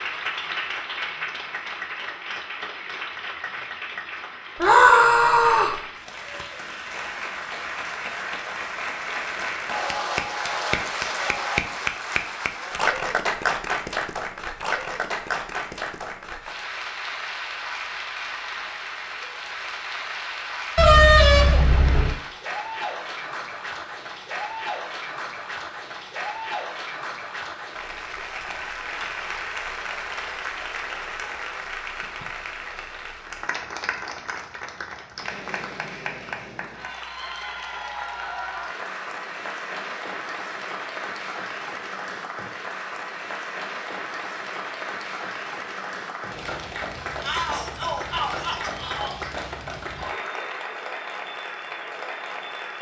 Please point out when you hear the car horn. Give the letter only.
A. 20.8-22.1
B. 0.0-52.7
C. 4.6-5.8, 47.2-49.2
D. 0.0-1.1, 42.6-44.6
A.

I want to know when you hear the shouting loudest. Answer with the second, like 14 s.
5 s.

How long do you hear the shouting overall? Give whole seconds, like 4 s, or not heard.
3 s.